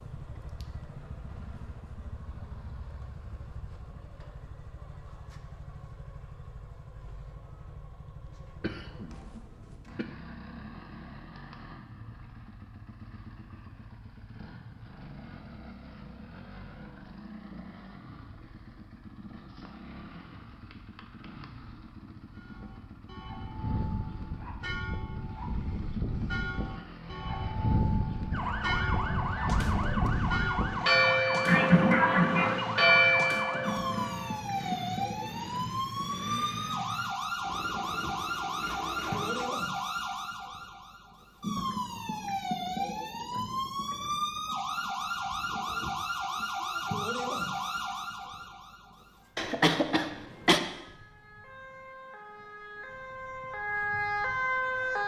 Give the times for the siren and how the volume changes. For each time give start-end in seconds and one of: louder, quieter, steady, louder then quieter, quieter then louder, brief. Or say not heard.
28.3-55.0 steady.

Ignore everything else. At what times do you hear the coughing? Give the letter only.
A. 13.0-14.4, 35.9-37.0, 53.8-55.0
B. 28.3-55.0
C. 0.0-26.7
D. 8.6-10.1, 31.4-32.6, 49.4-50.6
D.